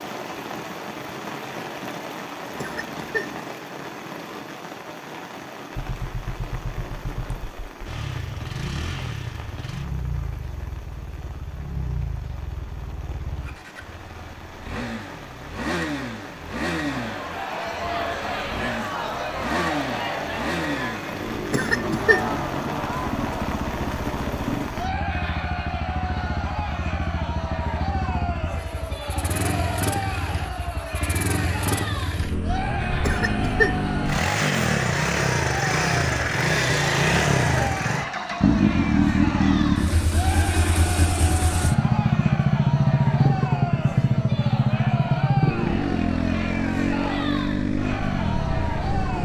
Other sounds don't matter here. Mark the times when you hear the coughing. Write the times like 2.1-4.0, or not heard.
2.5-3.4, 21.5-22.3, 33.0-33.8.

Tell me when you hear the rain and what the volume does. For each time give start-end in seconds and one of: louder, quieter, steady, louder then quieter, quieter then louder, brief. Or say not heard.
0.0-24.9 quieter then louder.